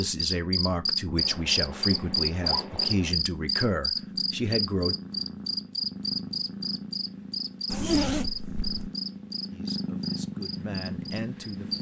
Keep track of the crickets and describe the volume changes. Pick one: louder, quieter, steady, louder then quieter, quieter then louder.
quieter.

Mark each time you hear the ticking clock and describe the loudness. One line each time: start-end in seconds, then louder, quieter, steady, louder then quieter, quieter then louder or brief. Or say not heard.
not heard.